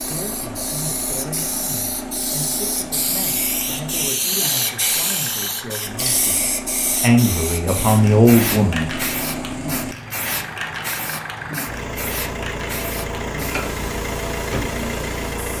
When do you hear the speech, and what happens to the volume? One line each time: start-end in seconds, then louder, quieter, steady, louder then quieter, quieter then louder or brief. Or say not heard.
0.0-8.9 louder.